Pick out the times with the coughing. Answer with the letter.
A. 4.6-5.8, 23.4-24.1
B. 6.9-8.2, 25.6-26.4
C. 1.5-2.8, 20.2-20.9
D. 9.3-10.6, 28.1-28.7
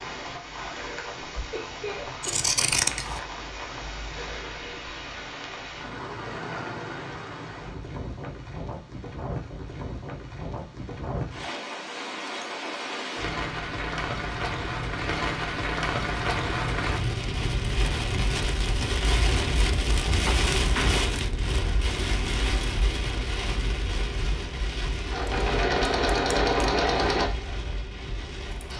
C.